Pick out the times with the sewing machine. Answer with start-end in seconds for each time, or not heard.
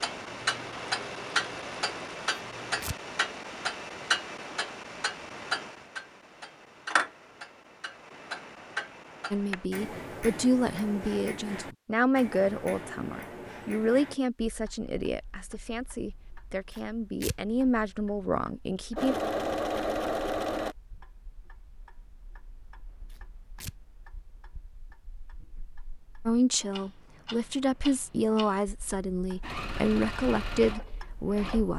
0.1-2.8, 18.9-20.8, 29.4-31.7.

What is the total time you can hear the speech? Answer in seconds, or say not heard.
15 s.